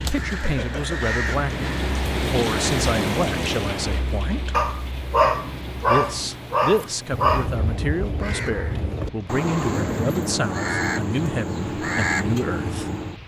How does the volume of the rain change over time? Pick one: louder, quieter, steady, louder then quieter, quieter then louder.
quieter.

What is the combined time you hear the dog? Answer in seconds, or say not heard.
3 s.